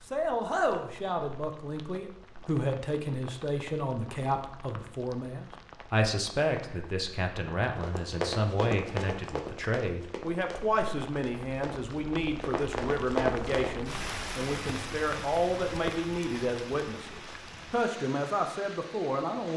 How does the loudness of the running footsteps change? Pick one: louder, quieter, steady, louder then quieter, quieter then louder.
quieter then louder.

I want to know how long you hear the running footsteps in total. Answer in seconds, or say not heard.
6 s.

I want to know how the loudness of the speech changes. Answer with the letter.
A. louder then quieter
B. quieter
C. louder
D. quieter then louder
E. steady
E.